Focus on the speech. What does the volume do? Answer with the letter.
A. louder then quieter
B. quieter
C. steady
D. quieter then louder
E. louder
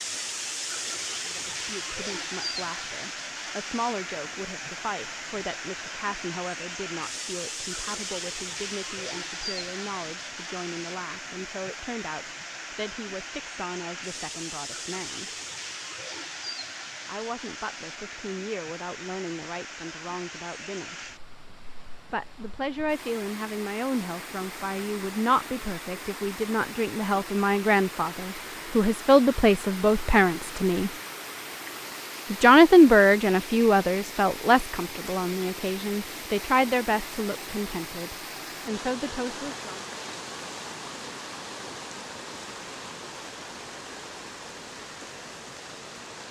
E.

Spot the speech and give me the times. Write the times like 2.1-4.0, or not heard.
1.2-15.3, 17.1-20.9, 22.1-30.9, 32.3-39.8.